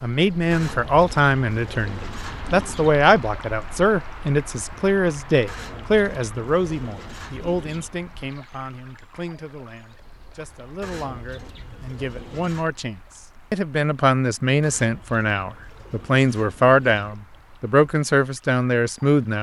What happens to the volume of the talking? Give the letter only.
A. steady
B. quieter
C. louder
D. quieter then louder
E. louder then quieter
D.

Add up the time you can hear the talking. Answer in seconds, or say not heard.
19 s.